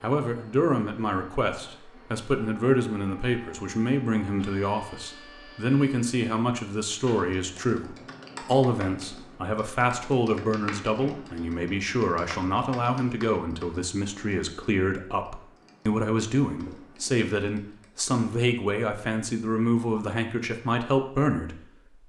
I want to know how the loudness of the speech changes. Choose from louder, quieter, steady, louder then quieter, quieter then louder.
steady.